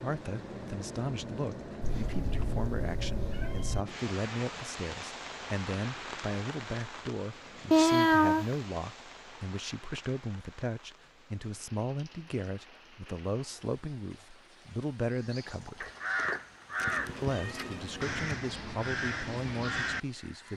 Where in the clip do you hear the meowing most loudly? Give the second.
8 s.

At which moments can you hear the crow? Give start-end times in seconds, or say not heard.
15.1-20.5.